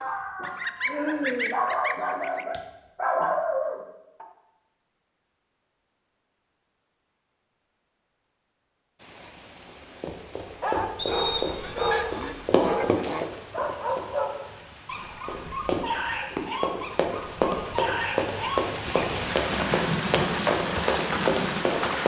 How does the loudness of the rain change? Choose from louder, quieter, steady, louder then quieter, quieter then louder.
louder.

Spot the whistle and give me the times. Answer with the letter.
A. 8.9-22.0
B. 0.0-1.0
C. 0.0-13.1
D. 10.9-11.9
D.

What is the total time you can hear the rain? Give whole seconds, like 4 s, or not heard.
13 s.